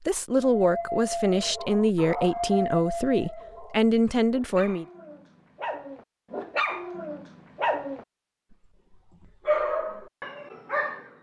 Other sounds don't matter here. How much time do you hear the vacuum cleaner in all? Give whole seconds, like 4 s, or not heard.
not heard.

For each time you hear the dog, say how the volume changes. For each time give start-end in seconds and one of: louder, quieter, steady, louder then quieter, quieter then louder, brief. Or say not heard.
0.4-8.6 quieter then louder
9.2-11.1 brief.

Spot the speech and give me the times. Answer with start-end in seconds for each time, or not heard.
0.0-4.8.